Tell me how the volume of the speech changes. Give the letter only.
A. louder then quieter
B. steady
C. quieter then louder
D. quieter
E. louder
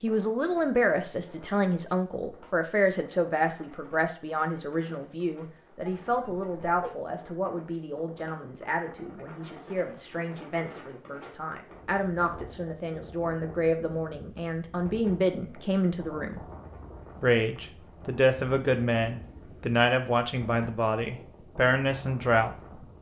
C.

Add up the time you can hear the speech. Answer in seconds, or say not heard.
22 s.